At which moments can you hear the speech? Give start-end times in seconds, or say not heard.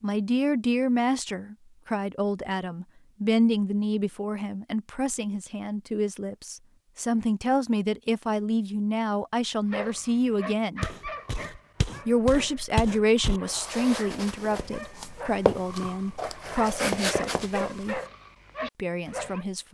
0.0-10.8, 12.1-18.0, 18.8-19.6.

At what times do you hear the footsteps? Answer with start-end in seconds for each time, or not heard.
10.8-18.0.